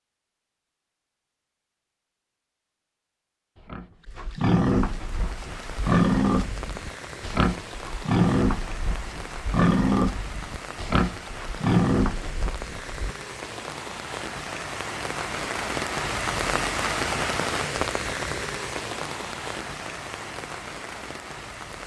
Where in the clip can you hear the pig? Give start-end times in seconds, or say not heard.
3.5-13.2.